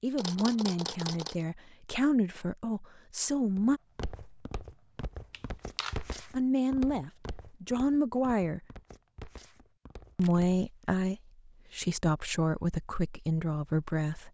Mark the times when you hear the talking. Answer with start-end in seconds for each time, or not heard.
0.0-3.8, 6.3-8.6, 10.2-14.2.